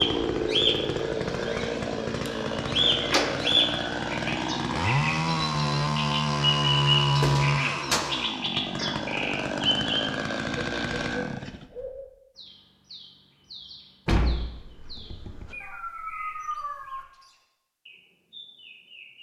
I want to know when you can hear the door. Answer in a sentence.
The door can be heard from 3.0 to 3.6 s, from 7.2 to 8.2 s and from 14.1 to 15.6 s.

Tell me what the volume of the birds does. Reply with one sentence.
The volume of the birds goes down.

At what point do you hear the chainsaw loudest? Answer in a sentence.
The loudest moment of the chainsaw is at 7 seconds.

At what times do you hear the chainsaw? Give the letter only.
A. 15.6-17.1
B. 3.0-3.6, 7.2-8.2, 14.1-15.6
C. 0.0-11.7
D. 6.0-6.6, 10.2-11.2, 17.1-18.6
C.